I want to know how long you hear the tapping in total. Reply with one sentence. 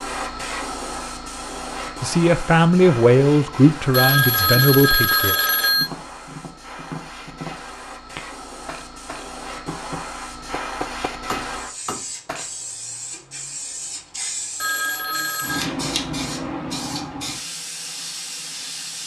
The tapping can be heard for 7 seconds in total.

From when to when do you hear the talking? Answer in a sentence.
The talking can be heard from 2.0 to 5.3 s.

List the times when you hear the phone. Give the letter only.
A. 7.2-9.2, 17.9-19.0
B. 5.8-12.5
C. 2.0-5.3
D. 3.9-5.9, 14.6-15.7
D.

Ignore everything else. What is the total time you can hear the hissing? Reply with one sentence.
You can hear the hissing for 19 seconds altogether.